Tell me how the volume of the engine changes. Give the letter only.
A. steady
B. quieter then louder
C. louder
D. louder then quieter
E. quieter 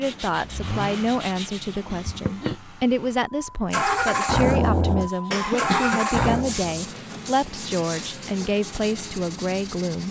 D.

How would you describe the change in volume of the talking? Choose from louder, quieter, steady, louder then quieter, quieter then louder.
steady.